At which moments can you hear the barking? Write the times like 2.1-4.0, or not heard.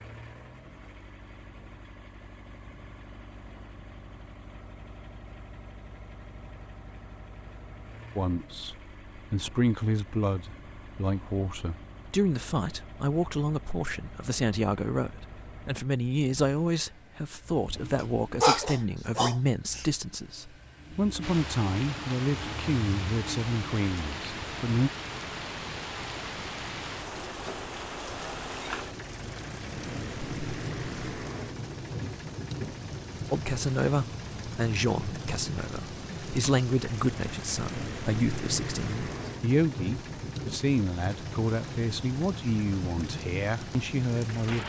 17.9-19.9.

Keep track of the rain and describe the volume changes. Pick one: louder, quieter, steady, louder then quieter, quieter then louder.
steady.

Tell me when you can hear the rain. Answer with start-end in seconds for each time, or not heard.
21.2-44.6.